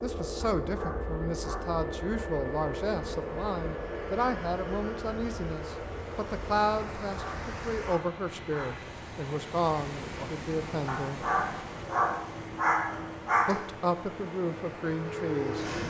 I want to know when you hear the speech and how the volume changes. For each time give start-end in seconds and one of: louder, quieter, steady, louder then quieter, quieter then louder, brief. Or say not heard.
0.0-11.2 steady
13.4-15.7 brief.